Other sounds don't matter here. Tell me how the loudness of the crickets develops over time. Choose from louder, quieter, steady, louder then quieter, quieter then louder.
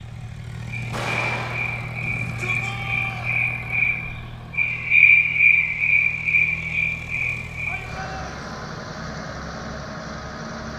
louder then quieter.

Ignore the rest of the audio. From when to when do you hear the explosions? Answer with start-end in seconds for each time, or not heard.
0.9-2.0.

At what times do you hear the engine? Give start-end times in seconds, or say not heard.
0.0-10.7.